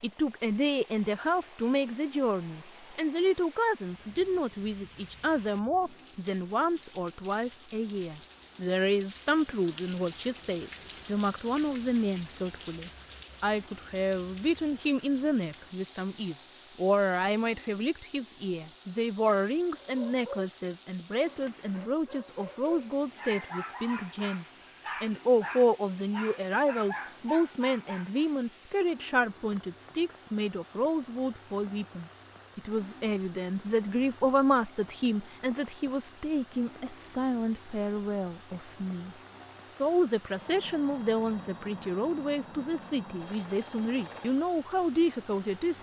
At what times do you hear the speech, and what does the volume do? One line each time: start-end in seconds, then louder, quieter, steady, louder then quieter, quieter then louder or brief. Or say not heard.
0.0-45.7 steady.